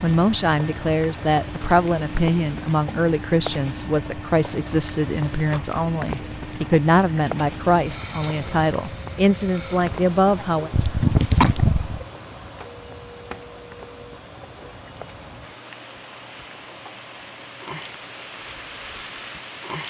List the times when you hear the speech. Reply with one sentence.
The speech can be heard from 0.0 to 10.7 s.